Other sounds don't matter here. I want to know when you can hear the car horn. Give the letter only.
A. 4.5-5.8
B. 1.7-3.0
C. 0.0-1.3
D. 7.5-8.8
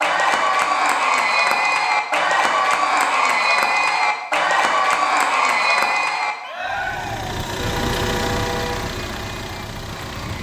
D.